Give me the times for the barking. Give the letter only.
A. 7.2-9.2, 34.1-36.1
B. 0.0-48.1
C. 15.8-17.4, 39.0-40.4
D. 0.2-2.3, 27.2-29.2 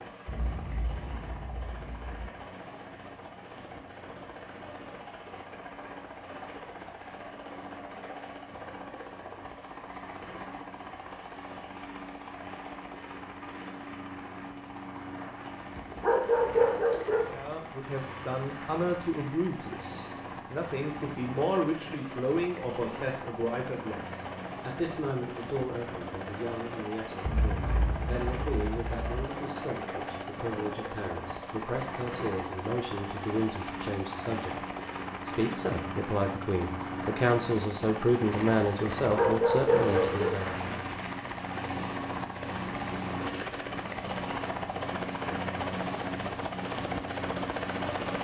C.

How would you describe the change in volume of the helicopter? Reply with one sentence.
The volume of the helicopter goes up.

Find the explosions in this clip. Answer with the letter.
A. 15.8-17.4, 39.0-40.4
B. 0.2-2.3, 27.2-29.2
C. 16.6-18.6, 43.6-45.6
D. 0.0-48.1
B.